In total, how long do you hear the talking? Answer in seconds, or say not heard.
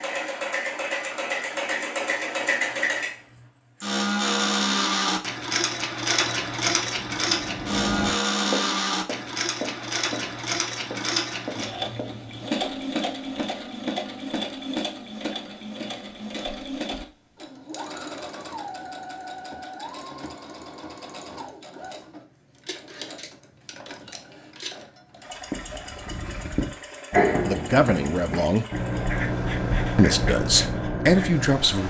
3 s.